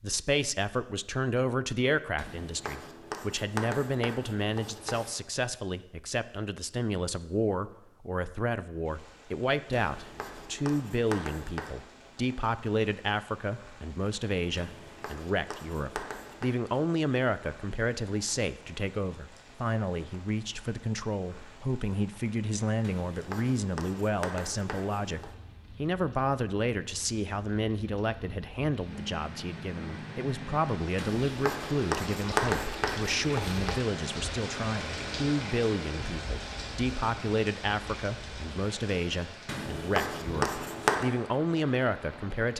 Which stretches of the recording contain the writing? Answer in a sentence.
The writing can be heard from 2.1 to 5.1 s, from 9.8 to 11.8 s, from 14.6 to 16.6 s, from 22.8 to 25.3 s, from 30.9 to 33.8 s and from 39.5 to 41.0 s.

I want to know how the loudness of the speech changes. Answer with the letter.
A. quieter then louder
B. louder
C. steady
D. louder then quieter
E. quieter
C.